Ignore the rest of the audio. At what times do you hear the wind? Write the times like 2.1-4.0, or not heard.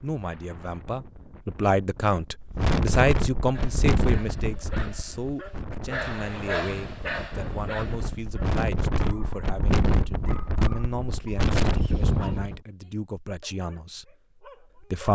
0.0-12.6.